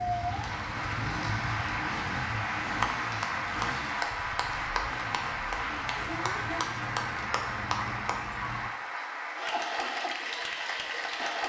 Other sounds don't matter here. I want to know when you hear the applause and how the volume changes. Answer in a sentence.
You can hear the applause from 0.0 to 11.4 s, at a steady volume.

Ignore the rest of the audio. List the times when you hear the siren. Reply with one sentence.
The siren can be heard from 0.0 to 1.8 s and from 6.0 to 8.7 s.